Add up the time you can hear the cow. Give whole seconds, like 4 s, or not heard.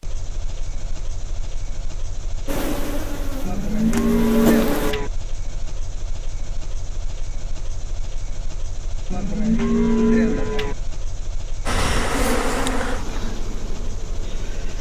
3 s.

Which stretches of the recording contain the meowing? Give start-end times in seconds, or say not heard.
not heard.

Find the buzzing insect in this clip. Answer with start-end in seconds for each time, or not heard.
2.5-5.0, 11.7-14.7.